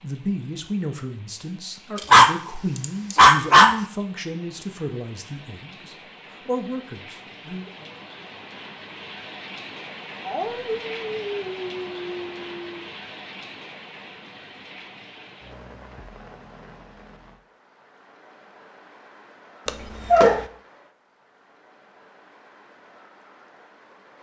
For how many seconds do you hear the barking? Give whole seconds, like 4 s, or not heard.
5 s.